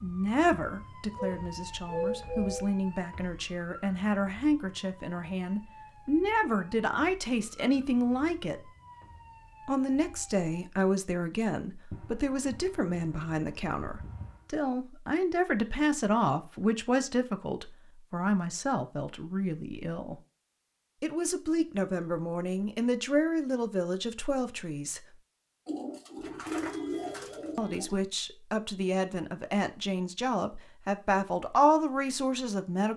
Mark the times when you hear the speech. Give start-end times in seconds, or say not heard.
0.0-8.7, 9.7-20.1, 21.0-25.0, 27.6-32.9.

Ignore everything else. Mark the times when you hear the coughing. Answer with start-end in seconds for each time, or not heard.
not heard.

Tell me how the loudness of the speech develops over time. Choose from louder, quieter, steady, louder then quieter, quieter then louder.
steady.